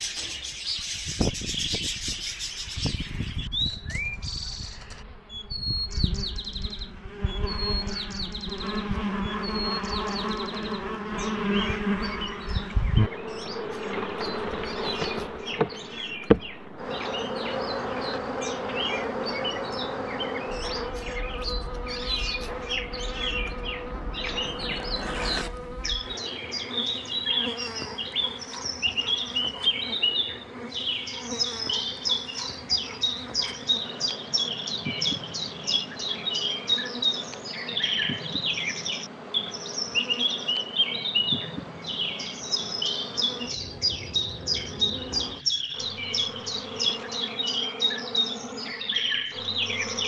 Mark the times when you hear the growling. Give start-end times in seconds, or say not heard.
not heard.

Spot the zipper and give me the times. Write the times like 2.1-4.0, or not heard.
24.5-25.9.